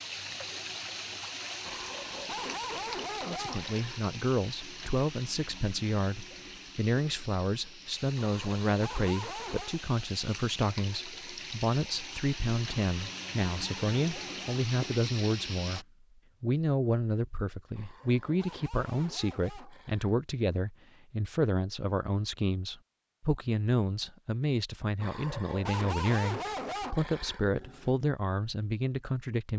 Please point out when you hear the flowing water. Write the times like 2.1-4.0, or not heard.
0.0-15.8.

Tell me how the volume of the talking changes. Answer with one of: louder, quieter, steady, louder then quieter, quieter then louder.
steady.